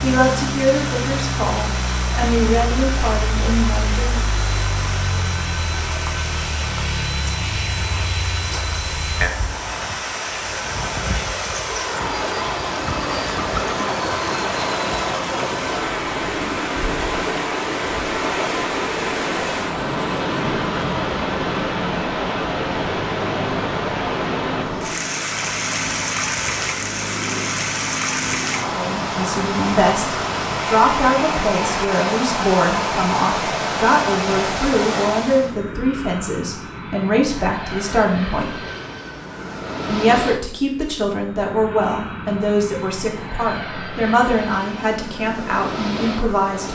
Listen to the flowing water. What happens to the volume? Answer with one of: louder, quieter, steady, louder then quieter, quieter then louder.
louder.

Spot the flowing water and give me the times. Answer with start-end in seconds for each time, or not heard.
0.0-35.5.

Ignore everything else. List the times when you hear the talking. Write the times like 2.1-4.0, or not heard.
0.0-4.2, 28.6-38.5, 39.9-46.7.